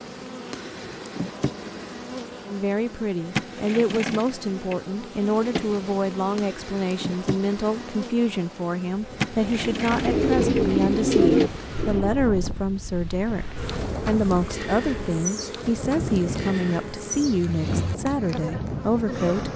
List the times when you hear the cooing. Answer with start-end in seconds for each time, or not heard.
9.6-12.1.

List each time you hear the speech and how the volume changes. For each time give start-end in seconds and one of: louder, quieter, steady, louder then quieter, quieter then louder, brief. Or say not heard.
2.5-19.5 steady.